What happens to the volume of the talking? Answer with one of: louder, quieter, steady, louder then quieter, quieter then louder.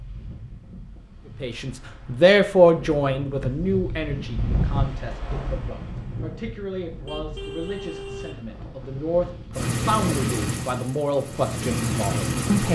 quieter then louder.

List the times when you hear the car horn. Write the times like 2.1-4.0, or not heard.
7.0-8.4.